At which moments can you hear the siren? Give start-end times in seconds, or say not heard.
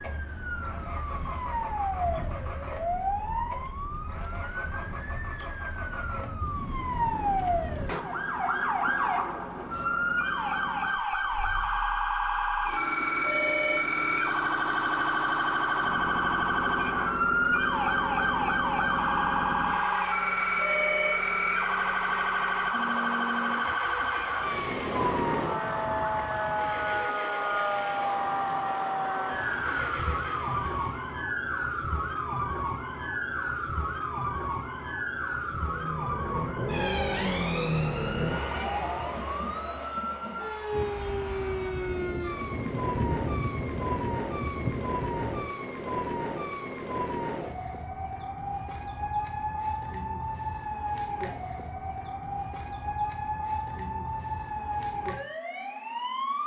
0.0-56.4.